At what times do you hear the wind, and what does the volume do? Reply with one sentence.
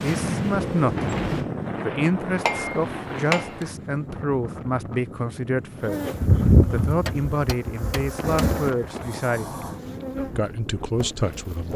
You can hear the wind from 0.0 to 11.7 s, getting quieter.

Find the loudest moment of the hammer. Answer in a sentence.
The loudest moment of the hammer is at 3 seconds.